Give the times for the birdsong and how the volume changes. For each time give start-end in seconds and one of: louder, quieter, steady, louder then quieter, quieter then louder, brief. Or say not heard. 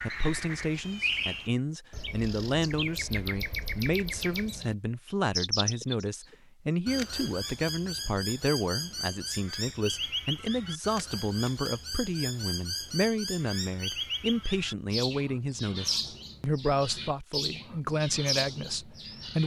0.0-19.4 steady.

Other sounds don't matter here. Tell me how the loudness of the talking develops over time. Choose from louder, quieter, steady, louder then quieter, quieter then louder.
steady.